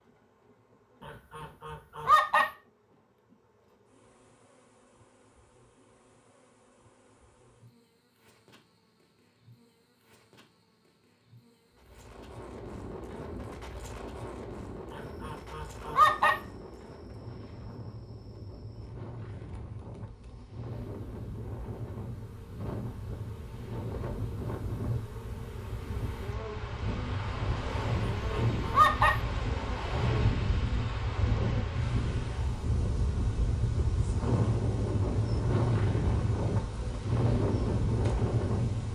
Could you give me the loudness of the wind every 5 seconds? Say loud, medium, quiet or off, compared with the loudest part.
off, off, quiet, quiet, medium, medium, loud, loud.